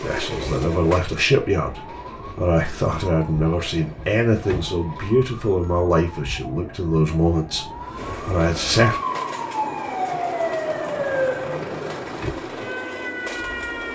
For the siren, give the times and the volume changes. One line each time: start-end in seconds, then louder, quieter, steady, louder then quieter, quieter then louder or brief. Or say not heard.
0.1-13.9 louder.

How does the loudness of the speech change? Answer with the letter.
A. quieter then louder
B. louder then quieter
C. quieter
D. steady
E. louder
D.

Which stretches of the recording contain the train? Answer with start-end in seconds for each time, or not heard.
0.0-5.2, 8.0-13.9.